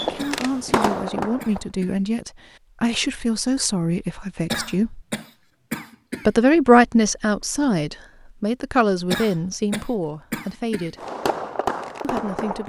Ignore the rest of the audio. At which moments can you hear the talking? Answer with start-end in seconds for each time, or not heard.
0.0-5.0, 6.2-10.9, 12.0-12.6.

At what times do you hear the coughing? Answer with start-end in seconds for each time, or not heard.
0.1-2.0, 4.5-6.3, 9.1-10.9.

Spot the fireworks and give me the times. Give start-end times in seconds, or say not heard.
0.0-1.6, 10.9-12.6.